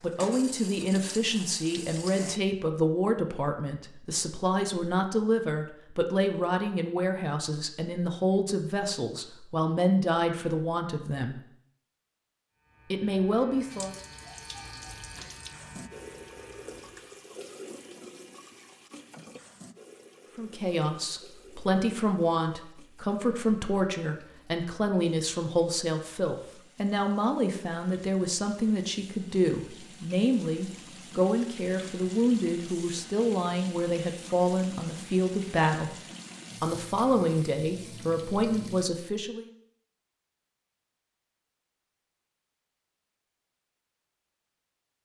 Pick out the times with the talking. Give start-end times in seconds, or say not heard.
0.0-11.4, 12.9-13.9, 20.4-36.0, 36.6-39.5.